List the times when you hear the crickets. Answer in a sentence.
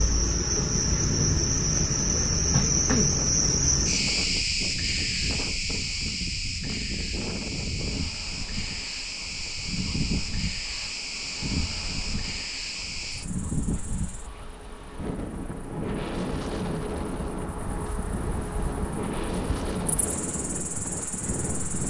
You can hear the crickets from 0.0 to 21.8 s.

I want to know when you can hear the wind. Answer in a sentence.
You can hear the wind from 0.0 to 21.8 s.